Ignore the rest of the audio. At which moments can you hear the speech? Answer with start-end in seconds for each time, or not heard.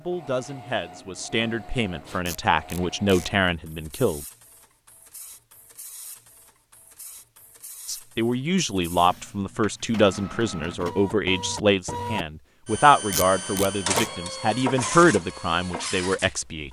0.0-4.2, 7.8-16.6.